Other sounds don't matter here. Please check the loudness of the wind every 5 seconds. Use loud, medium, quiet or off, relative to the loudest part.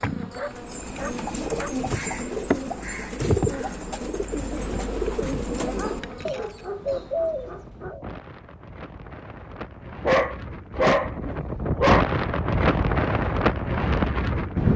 off, quiet, loud.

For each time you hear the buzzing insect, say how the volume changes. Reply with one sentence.
The buzzing insect can be heard from 0.0 to 7.2 s, getting louder then quieter.